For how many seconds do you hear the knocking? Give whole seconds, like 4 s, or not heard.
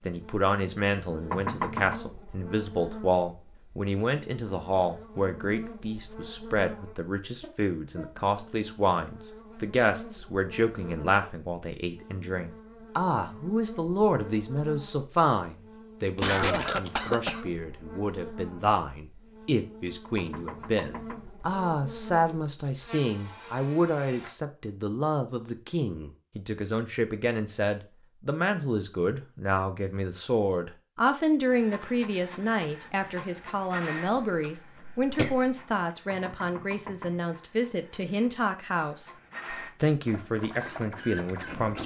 3 s.